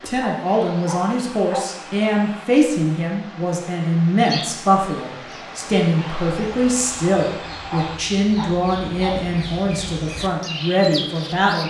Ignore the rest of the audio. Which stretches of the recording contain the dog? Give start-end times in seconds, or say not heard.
0.2-1.8, 7.7-9.2.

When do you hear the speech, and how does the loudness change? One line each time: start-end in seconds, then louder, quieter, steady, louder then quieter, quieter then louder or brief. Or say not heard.
0.1-11.6 steady.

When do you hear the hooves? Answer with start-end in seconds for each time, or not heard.
not heard.